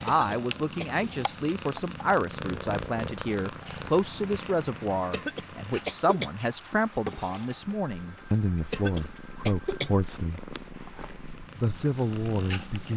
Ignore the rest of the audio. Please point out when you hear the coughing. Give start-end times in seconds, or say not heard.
0.1-1.1, 5.1-6.3, 8.7-9.9.